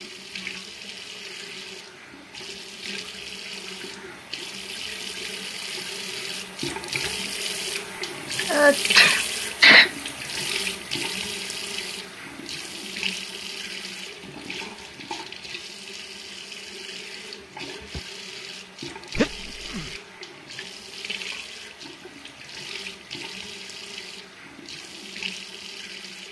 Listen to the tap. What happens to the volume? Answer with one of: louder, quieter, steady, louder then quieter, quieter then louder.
louder then quieter.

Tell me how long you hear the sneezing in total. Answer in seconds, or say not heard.
2 s.